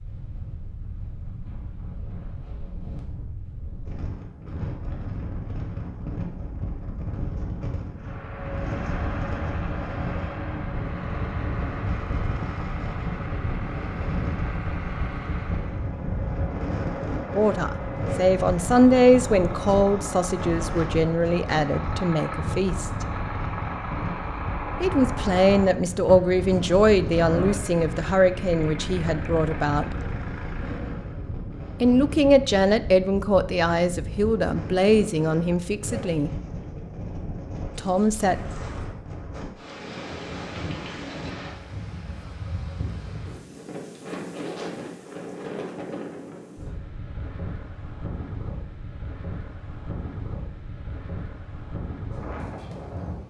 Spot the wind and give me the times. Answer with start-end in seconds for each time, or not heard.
0.0-53.2.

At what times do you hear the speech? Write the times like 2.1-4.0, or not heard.
17.4-23.1, 24.8-29.9, 31.8-36.3, 37.8-38.4.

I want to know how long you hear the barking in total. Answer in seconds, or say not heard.
not heard.